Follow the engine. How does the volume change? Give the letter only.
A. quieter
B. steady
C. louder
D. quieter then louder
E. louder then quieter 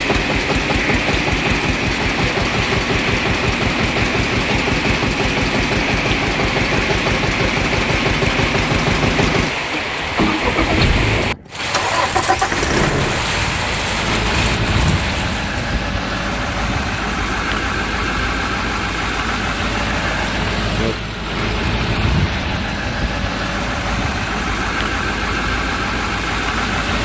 B.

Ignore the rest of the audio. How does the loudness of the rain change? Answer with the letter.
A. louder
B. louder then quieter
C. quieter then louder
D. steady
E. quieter
D.